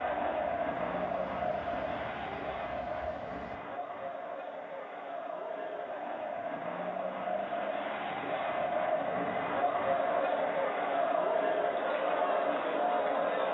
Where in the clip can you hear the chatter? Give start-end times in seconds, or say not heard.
0.0-13.4.